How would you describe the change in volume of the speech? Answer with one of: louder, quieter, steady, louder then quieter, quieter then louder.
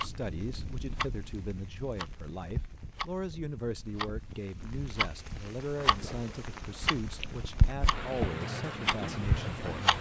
steady.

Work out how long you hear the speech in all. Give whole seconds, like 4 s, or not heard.
10 s.